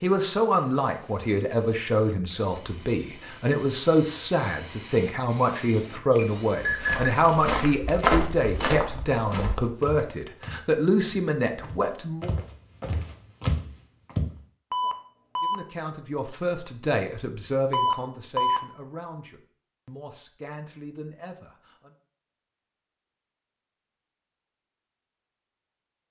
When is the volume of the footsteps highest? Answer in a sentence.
The loudest moment of the footsteps is at 8 seconds.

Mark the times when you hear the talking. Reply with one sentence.
You can hear the talking from 0.0 to 12.3 s and from 15.4 to 21.9 s.